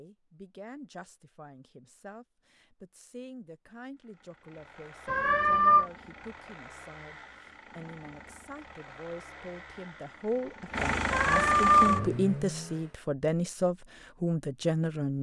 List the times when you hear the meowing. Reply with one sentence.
You can hear the meowing from 5.0 to 5.8 s and from 11.1 to 12.1 s.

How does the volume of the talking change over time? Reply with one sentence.
The volume of the talking goes up.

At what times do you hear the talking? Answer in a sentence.
The talking can be heard from 0.0 to 15.1 s.